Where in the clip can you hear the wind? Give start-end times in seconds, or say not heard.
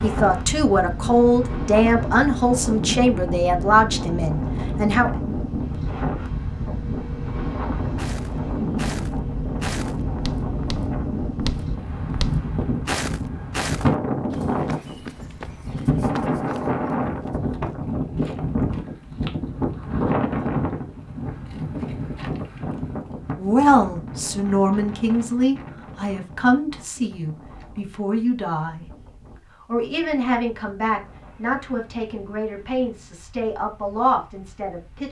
0.0-35.0.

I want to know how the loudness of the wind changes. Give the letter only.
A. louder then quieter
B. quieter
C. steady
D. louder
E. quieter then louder
B.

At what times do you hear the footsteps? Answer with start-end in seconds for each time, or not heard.
8.0-17.8.